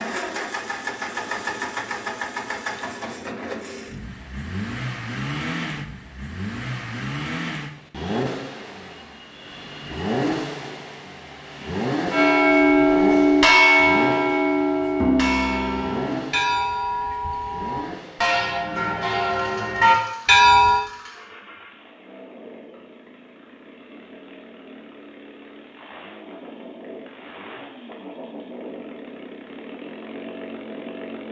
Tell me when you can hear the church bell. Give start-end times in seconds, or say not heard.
12.1-20.8.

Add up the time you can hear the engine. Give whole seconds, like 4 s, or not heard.
31 s.